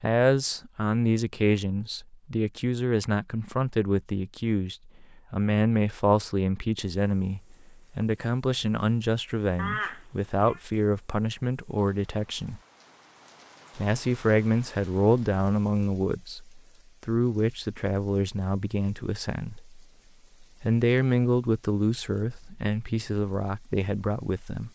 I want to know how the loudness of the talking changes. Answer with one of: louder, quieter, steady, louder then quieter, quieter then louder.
steady.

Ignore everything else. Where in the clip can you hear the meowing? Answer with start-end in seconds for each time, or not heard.
9.6-10.6.